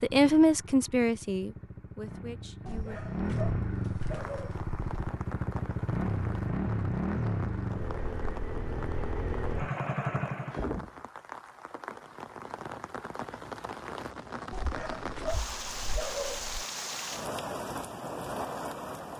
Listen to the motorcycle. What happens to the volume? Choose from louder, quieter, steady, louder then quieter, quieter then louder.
louder.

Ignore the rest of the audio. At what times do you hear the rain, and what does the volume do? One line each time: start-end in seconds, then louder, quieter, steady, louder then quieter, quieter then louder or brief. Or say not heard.
4.1-19.1 louder.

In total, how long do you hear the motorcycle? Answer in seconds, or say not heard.
11 s.